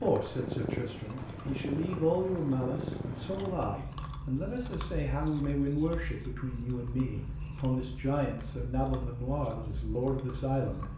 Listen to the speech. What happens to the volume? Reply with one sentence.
The loudness of the speech stays about the same.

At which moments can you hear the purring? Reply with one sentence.
The purring can be heard from 0.0 to 10.9 s.